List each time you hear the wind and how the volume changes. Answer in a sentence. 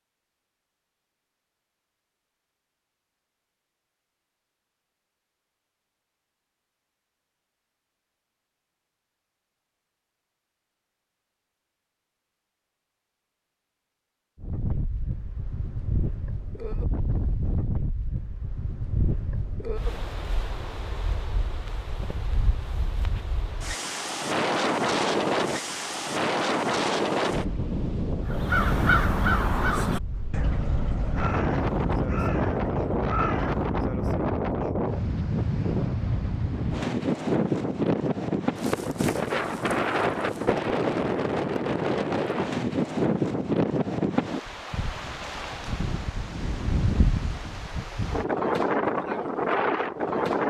You can hear the wind from 14.3 to 50.4 s, getting louder.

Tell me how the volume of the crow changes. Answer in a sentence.
The volume of the crow goes down.